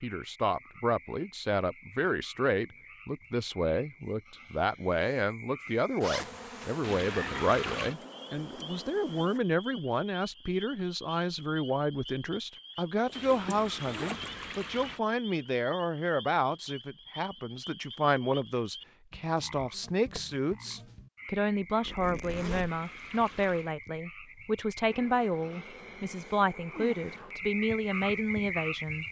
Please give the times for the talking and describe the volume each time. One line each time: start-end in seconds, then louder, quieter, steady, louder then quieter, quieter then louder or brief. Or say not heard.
0.0-29.0 steady.